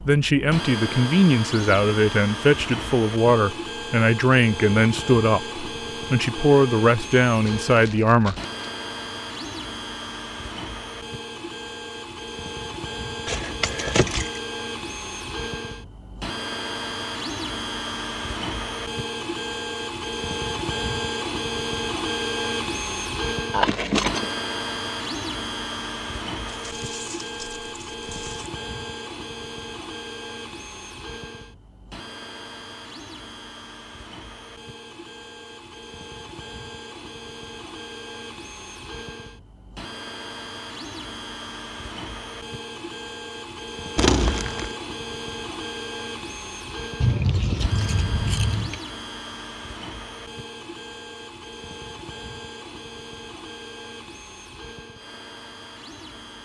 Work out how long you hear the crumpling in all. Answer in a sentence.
The crumpling can be heard for 4 seconds in total.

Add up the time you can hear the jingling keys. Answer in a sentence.
The jingling keys can be heard for 4 seconds in total.